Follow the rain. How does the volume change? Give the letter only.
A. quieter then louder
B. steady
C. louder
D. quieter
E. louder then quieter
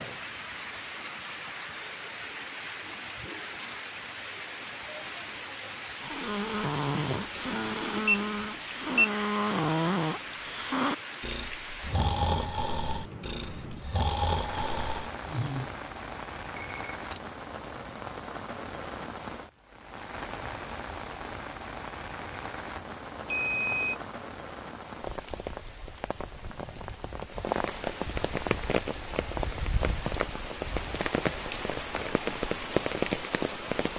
C.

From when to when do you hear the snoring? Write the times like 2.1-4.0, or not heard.
6.0-15.7.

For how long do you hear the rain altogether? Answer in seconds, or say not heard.
34 s.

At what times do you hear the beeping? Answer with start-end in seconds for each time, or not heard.
7.3-9.1, 16.6-17.2, 23.2-23.9.